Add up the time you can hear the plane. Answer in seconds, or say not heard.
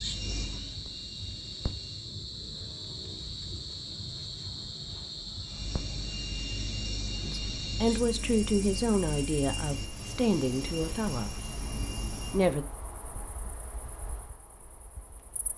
9 s.